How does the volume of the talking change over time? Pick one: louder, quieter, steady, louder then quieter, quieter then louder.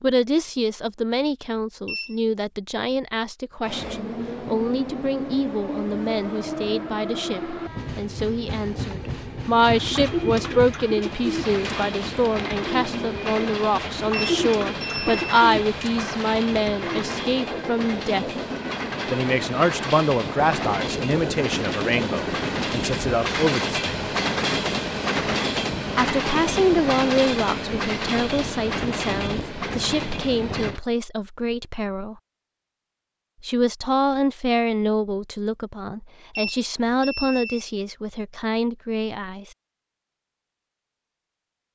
steady.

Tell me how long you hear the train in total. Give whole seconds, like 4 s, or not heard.
27 s.